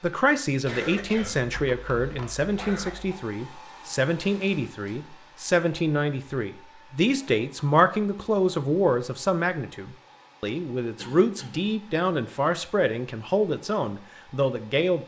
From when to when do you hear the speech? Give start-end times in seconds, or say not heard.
0.0-15.0.